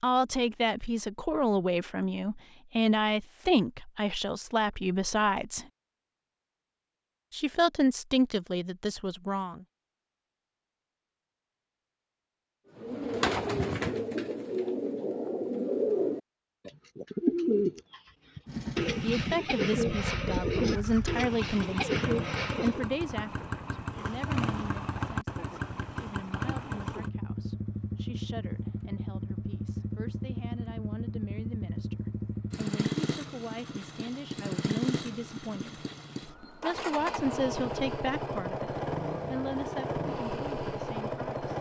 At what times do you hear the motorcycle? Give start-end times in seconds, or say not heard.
18.4-41.5.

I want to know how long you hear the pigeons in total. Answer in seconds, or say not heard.
10 s.